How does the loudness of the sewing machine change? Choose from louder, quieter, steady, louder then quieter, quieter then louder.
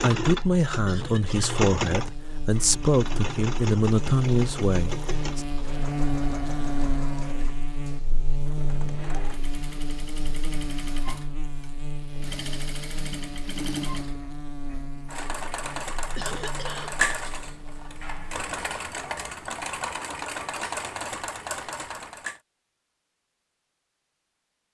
quieter then louder.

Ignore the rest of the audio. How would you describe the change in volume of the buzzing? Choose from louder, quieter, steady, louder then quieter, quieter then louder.
louder then quieter.